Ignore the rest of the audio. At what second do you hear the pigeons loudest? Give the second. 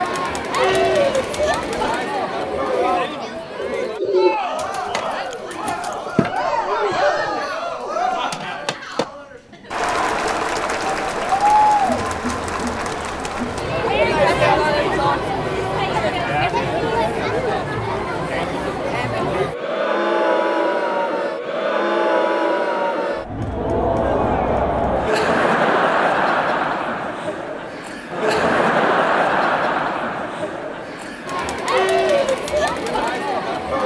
4 s.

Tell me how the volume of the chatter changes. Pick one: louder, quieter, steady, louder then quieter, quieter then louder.
steady.